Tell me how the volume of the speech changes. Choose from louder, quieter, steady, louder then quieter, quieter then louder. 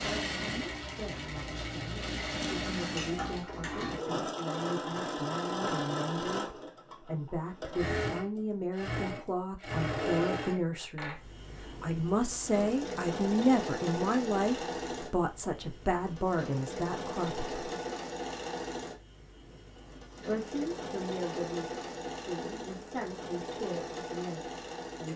louder then quieter.